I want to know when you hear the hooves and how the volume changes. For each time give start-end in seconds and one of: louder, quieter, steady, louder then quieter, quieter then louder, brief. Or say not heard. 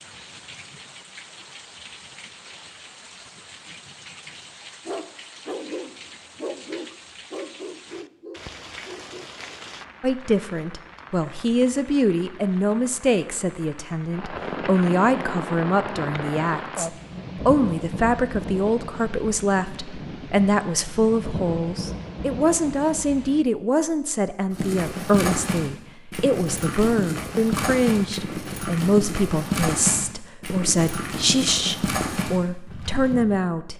24.5-33.2 steady.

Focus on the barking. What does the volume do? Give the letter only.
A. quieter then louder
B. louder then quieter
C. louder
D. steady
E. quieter
E.